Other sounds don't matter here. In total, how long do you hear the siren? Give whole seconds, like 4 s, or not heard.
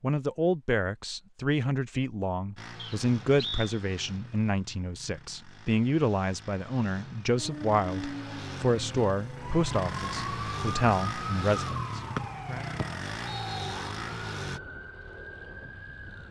9 s.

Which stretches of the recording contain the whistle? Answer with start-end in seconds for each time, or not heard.
2.8-3.8, 12.2-13.8.